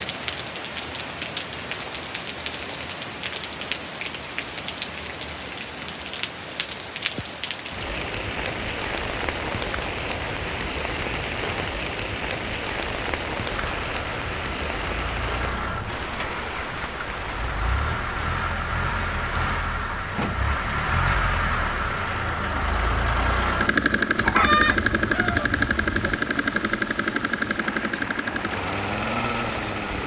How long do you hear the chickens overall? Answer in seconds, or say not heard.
2 s.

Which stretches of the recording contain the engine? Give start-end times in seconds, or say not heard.
13.4-30.0.